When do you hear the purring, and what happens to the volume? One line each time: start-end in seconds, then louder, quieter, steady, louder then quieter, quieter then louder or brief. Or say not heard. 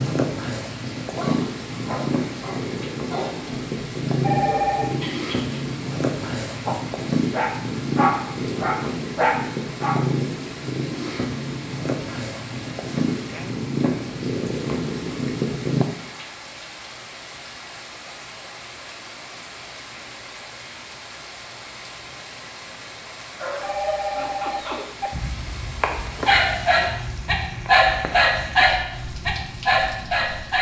0.0-15.8 steady.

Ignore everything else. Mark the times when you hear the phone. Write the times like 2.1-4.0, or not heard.
4.2-5.0, 23.6-25.1.